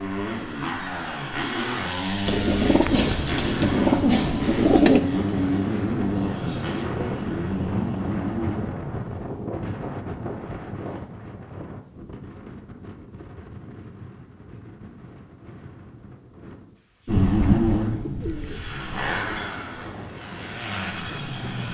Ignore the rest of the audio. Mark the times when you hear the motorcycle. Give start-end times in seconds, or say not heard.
0.0-9.2, 17.1-21.6.